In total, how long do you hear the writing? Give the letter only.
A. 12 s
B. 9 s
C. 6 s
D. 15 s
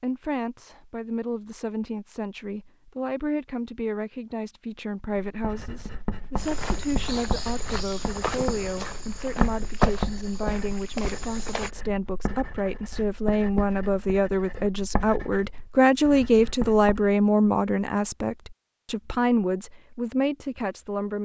A.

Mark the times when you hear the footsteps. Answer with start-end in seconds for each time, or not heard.
6.3-11.7.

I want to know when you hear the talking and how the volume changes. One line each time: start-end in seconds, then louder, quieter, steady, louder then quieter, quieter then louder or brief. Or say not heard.
0.0-21.2 louder.